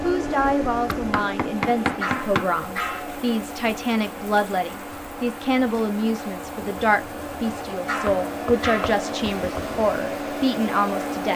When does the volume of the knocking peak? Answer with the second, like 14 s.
2 s.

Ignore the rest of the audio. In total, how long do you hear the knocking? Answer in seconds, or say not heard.
3 s.